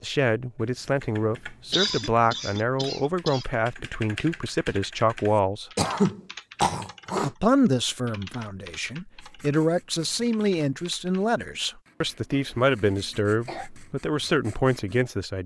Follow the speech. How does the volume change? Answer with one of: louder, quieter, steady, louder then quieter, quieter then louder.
steady.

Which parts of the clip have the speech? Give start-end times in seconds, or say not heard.
0.0-5.7, 7.2-15.4.